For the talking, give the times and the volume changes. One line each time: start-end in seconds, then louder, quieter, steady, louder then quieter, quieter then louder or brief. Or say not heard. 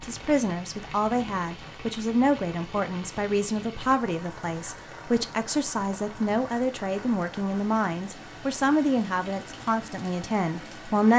0.0-11.1 steady.